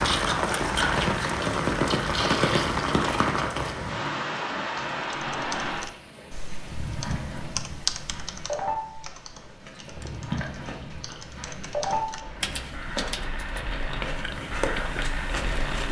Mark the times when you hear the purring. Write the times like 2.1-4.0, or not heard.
not heard.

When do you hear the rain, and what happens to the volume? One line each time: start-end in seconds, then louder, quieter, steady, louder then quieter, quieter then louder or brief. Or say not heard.
0.0-15.8 quieter.